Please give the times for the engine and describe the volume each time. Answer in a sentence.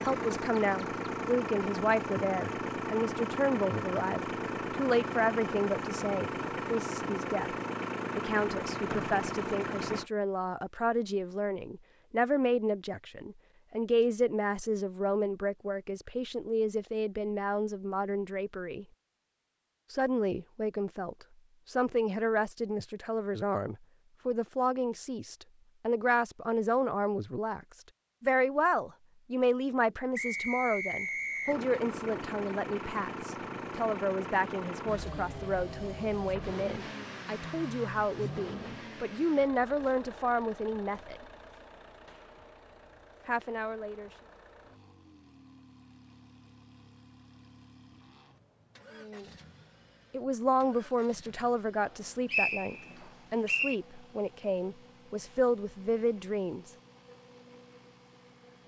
You can hear the engine from 0.0 to 10.1 s, at a steady volume; and from 31.4 to 58.6 s, getting quieter.